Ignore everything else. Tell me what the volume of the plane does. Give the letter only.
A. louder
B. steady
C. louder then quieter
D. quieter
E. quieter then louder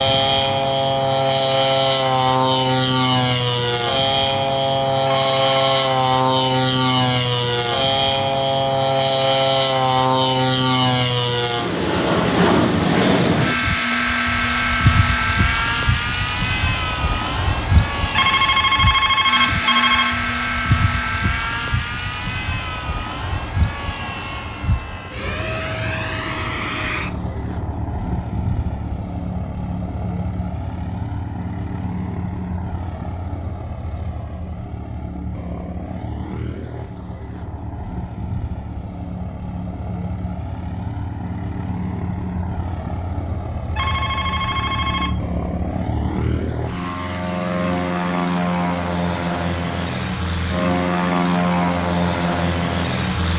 E.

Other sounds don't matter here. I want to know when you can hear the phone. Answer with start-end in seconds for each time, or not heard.
5.0-5.9, 18.1-20.1, 43.8-45.1.